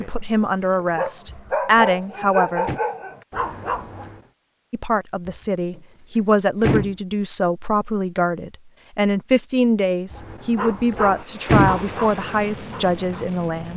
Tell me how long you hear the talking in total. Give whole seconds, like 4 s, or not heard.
12 s.